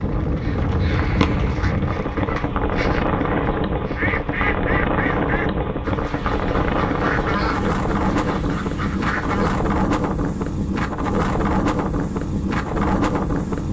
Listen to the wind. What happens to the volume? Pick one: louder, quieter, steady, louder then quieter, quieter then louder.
steady.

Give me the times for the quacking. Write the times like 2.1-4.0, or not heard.
0.3-9.6.